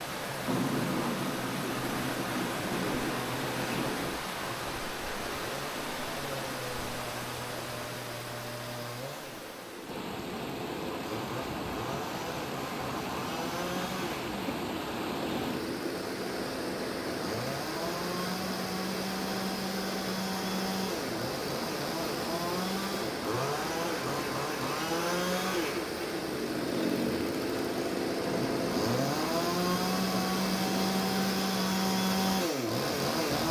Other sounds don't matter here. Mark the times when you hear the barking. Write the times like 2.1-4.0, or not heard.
not heard.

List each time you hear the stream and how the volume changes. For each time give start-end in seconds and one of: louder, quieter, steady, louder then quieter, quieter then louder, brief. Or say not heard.
0.0-33.4 steady.